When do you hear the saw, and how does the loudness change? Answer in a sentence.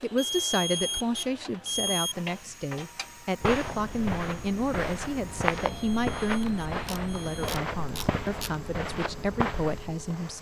The saw can't be heard in this clip.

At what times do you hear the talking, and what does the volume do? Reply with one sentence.
You can hear the talking from 0.0 to 10.3 s, at a steady volume.